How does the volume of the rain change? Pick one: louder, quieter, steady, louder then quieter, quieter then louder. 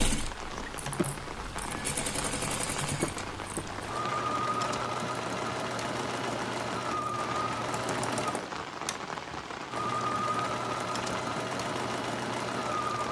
steady.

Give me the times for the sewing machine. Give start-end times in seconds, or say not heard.
0.0-13.0.